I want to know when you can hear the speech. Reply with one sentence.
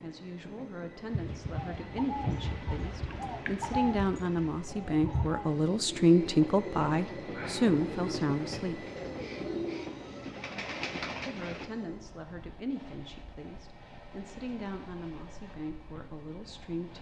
The speech can be heard from 0.0 to 8.8 s and from 11.2 to 16.9 s.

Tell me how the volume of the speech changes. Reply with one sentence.
The volume of the speech goes up, then down.